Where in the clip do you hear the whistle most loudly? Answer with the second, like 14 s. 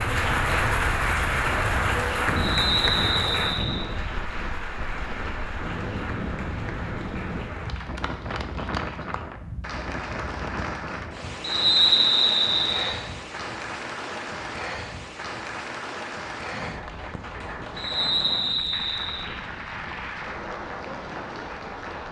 12 s.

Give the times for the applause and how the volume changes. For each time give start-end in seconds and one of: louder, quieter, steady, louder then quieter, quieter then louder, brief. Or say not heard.
0.0-22.0 quieter.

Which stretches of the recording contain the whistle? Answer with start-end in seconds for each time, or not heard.
2.4-3.9, 11.4-12.9, 17.8-19.2.